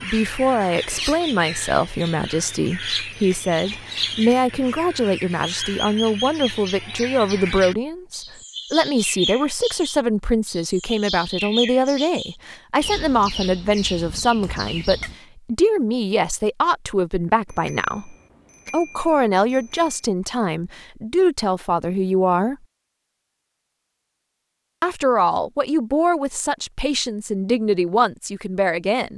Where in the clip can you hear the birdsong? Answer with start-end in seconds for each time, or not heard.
0.0-15.2.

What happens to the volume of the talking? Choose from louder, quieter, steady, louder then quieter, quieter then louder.
steady.